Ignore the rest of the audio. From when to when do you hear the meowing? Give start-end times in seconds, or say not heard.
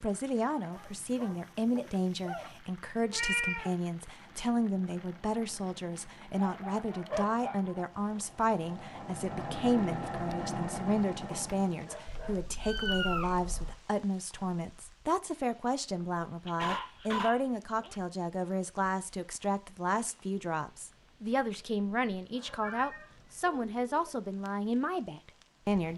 3.0-3.7, 12.1-13.8, 21.6-23.2.